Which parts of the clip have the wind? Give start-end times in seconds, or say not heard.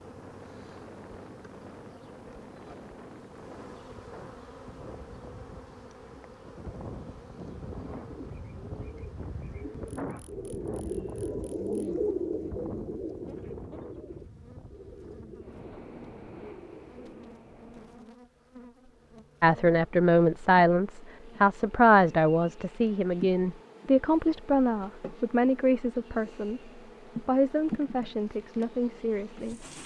0.0-18.1.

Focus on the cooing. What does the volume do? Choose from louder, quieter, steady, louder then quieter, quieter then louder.
louder then quieter.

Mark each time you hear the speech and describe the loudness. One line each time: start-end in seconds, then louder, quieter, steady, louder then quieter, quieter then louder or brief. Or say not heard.
19.4-29.6 quieter.